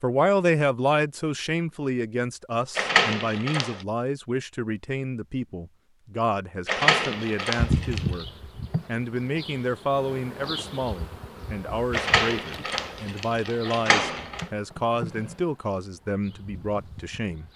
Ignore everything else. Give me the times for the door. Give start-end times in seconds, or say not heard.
2.8-3.9, 6.7-8.1, 11.9-14.4.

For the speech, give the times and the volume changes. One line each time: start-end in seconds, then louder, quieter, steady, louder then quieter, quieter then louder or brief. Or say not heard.
0.0-8.2 quieter
8.8-17.4 steady.